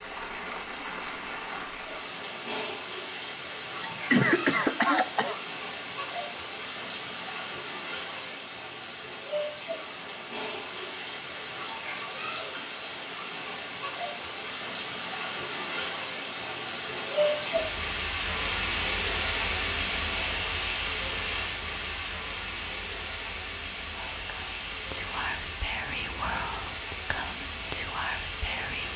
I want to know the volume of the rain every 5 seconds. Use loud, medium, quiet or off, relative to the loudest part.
medium, medium, medium, loud, loud, medium.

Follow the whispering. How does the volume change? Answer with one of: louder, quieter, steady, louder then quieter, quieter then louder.
quieter then louder.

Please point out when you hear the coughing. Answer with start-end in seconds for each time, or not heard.
3.8-5.3.